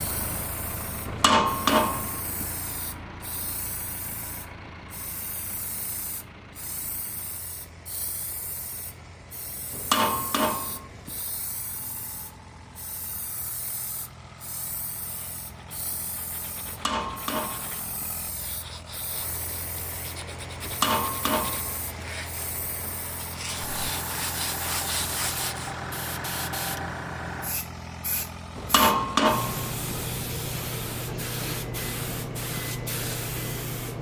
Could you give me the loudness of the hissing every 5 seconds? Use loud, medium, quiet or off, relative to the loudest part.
quiet, quiet, quiet, quiet, medium, loud, loud.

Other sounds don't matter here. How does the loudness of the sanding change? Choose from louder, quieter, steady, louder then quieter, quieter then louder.
louder.